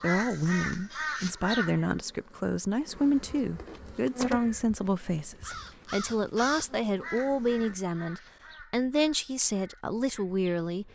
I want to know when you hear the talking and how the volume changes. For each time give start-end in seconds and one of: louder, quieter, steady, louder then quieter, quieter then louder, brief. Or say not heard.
0.0-10.9 steady.